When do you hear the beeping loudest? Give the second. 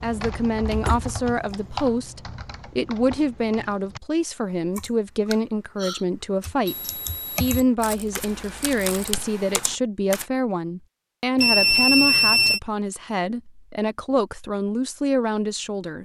12 s.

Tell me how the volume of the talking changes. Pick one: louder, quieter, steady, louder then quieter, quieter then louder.
steady.